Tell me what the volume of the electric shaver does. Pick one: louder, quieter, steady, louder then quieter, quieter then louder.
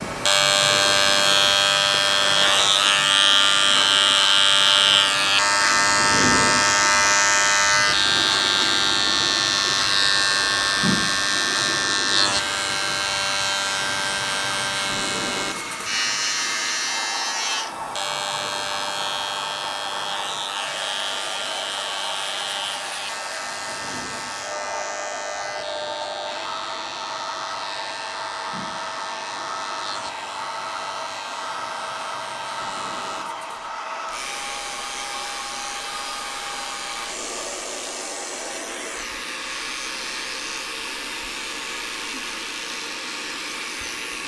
quieter.